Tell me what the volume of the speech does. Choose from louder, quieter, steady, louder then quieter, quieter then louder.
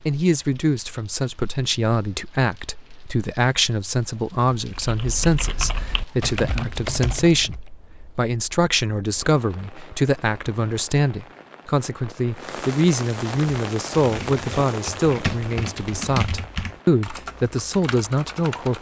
steady.